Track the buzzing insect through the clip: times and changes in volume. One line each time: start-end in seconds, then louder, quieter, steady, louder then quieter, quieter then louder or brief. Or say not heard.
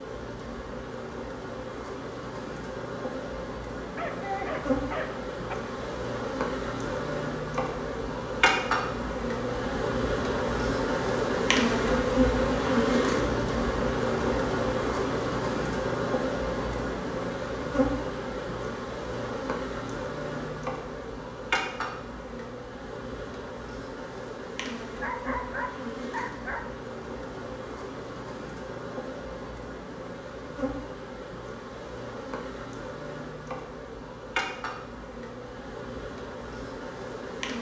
0.0-37.5 louder then quieter.